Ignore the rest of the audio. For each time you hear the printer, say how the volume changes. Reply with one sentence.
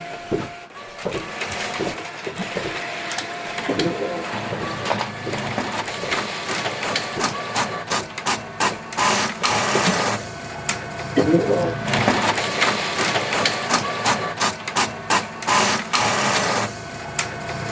You can hear the printer from 0.0 to 17.6 s, getting louder.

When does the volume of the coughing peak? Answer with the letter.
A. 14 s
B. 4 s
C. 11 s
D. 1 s
C.